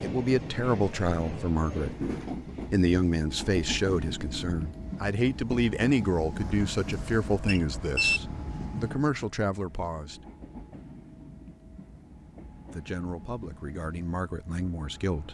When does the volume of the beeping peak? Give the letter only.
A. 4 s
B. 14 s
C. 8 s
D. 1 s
C.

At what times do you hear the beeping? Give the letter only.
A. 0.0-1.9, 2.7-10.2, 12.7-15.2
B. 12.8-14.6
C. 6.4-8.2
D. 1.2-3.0
C.